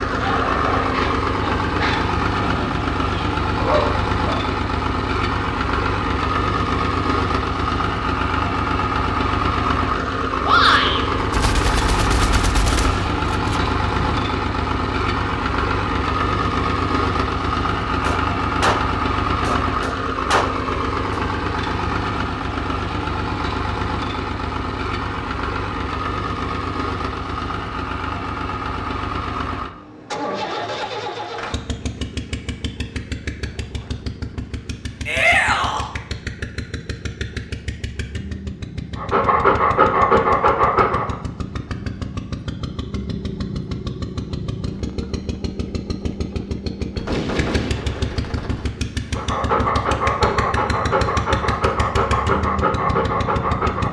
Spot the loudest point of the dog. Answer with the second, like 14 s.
40 s.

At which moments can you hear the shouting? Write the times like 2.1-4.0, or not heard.
10.4-11.0, 35.0-35.9.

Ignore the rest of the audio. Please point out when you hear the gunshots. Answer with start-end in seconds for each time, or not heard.
11.2-14.2, 18.0-21.2, 47.0-48.7.